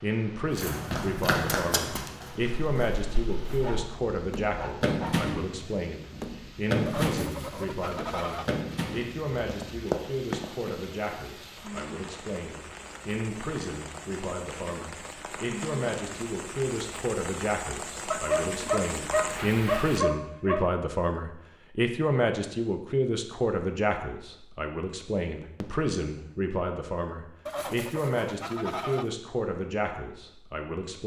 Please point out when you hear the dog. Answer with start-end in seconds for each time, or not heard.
3.6-5.2, 18.1-20.6.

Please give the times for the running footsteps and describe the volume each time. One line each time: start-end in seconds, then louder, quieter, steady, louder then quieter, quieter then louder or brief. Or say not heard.
0.6-11.2 quieter then louder.